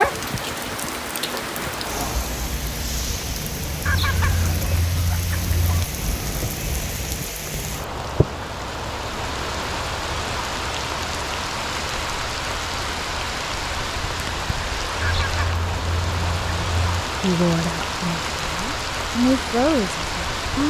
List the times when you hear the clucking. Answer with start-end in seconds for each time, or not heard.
3.9-5.8, 15.0-17.1.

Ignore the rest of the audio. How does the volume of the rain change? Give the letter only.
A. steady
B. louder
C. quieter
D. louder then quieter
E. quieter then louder
A.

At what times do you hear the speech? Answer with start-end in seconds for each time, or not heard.
17.2-20.6.